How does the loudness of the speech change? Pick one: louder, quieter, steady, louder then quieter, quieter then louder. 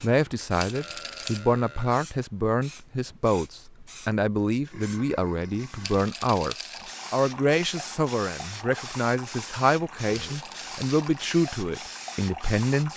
steady.